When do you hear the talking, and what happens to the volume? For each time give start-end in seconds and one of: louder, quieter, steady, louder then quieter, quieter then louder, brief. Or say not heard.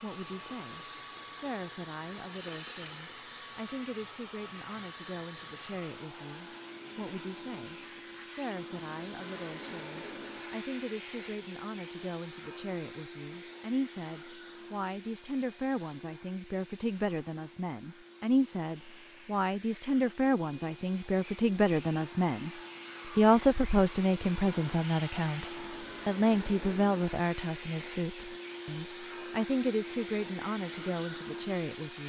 0.0-22.5 louder
23.1-32.0 quieter.